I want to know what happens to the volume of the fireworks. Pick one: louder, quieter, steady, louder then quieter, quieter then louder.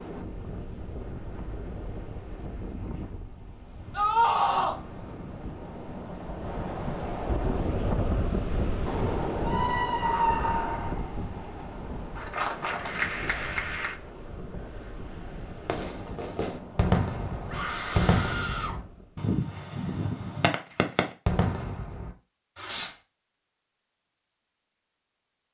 steady.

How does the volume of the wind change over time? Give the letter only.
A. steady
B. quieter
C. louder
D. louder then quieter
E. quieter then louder
D.